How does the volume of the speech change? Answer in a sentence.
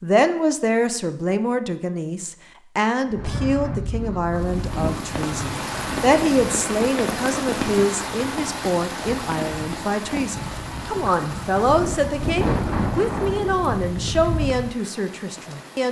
The loudness of the speech stays about the same.